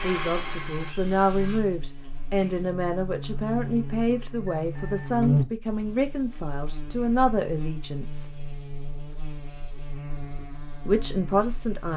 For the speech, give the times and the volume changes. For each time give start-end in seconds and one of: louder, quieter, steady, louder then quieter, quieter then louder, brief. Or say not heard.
0.0-8.2 steady
10.8-11.9 brief.